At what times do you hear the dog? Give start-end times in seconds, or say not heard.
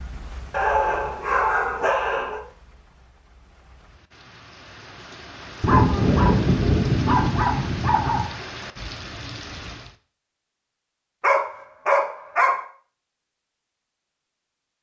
0.5-2.4, 5.6-8.2, 11.2-12.7.